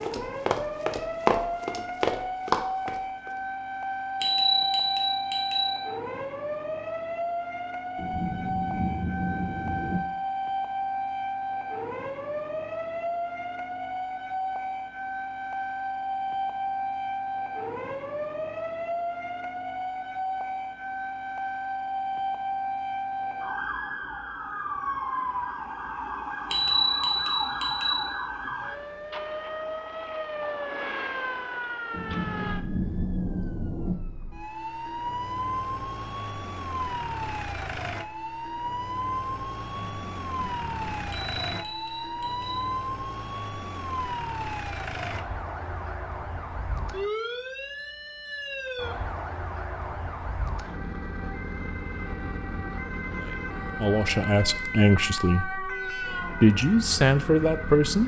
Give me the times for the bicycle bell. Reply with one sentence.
The bicycle bell can be heard from 4.2 to 5.8 s, from 26.5 to 28.1 s and from 41.1 to 42.6 s.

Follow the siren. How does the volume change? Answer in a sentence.
The loudness of the siren stays about the same.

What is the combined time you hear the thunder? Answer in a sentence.
The thunder can be heard for 6 seconds in total.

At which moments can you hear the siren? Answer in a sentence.
The siren can be heard from 0.0 to 58.0 s.